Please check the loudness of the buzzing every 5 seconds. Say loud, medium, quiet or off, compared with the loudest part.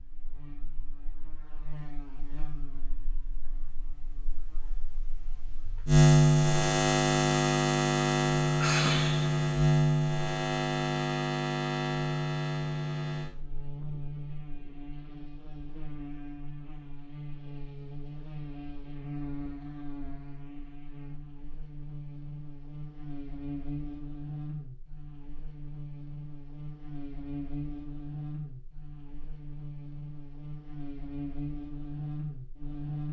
quiet, loud, medium, quiet, quiet, quiet, quiet.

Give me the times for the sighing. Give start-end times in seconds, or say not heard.
8.6-9.2.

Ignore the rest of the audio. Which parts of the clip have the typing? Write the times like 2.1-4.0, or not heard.
not heard.